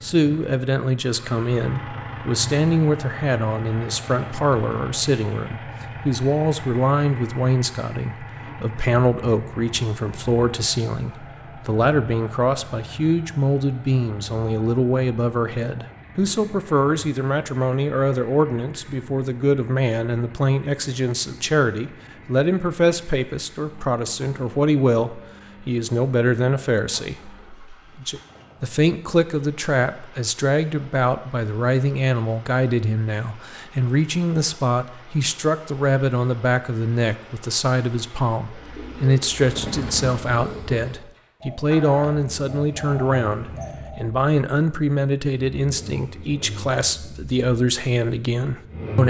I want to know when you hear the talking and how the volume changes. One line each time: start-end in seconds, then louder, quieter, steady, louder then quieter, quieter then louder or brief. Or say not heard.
0.0-49.0 steady.